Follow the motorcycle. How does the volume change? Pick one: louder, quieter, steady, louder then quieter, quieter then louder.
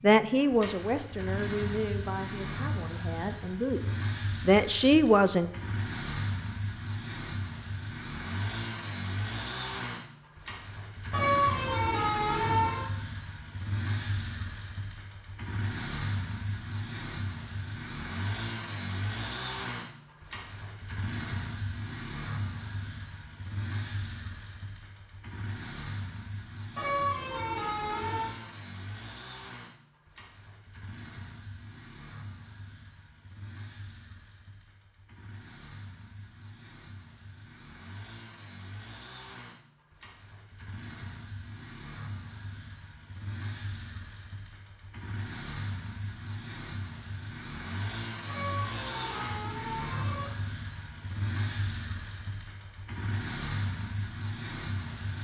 quieter then louder.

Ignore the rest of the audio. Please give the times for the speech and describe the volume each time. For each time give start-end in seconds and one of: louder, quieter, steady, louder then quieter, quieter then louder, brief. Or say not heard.
0.0-5.5 quieter then louder.